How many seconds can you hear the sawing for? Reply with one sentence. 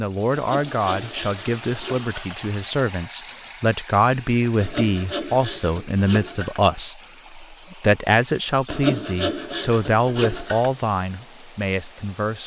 You can hear the sawing for 6 seconds altogether.